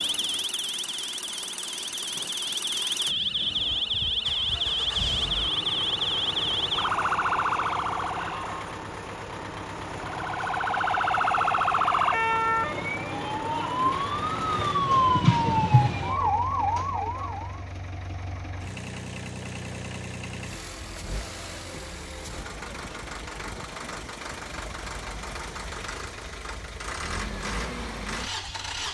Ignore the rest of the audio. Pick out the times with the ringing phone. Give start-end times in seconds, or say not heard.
not heard.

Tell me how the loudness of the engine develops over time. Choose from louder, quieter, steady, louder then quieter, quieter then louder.
steady.